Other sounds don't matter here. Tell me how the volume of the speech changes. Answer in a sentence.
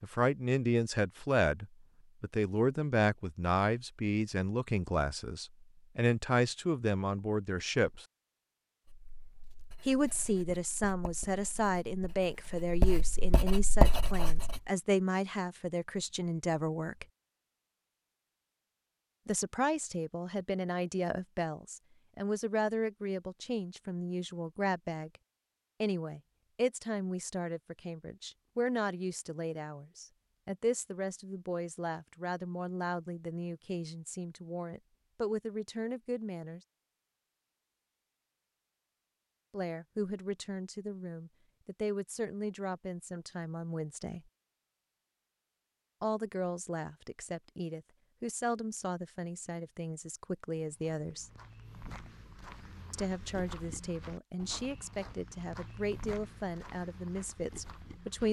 The loudness of the speech goes down.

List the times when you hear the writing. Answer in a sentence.
The writing can be heard from 8.8 to 14.6 s.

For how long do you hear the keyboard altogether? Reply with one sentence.
The keyboard can't be heard in this clip.